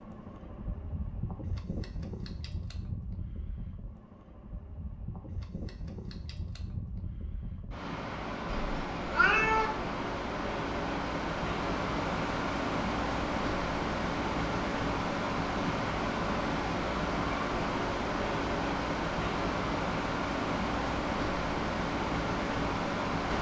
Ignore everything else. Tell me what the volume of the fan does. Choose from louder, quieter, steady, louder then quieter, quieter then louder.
louder.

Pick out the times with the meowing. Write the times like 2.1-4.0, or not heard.
8.4-9.7.